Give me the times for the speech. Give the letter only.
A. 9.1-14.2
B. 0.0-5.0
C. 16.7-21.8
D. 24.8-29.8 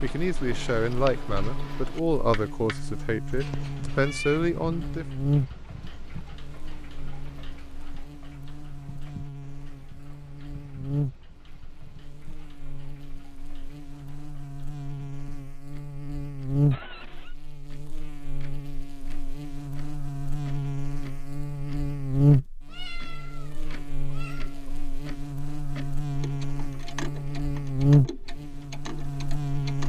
B.